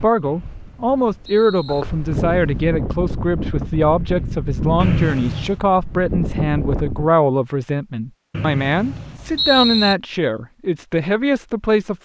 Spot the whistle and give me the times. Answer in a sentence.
The whistle can be heard from 0.2 to 1.9 s, from 4.8 to 5.6 s and from 8.3 to 9.9 s.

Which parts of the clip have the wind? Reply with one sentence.
You can hear the wind from 0.0 to 7.1 s.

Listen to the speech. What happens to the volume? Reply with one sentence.
The loudness of the speech stays about the same.